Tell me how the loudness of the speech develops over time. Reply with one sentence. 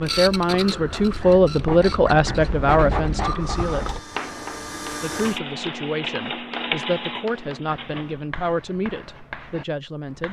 The loudness of the speech goes down.